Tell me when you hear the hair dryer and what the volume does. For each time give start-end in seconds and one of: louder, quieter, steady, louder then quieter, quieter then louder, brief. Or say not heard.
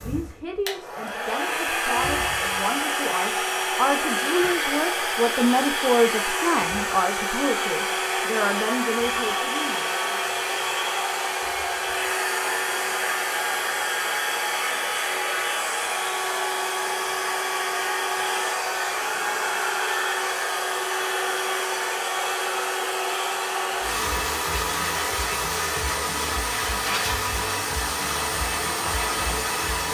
0.0-29.9 steady.